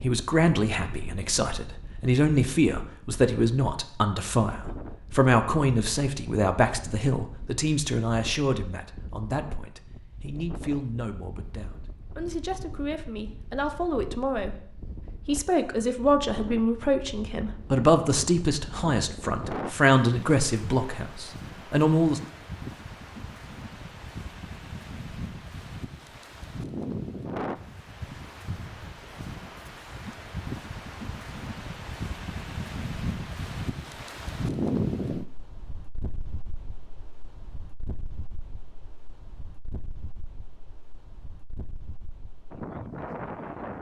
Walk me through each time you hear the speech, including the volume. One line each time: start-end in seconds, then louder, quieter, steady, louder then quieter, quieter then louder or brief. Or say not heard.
0.0-22.2 quieter then louder.